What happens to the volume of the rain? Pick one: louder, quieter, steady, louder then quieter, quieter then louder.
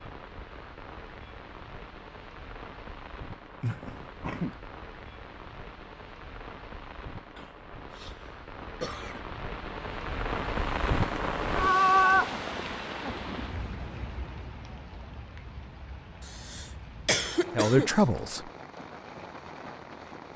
louder then quieter.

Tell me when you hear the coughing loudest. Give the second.
17 s.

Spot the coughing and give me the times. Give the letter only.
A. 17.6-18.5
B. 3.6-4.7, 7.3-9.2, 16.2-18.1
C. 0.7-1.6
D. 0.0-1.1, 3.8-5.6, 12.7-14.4
B.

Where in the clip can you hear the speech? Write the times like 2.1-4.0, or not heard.
17.6-18.5.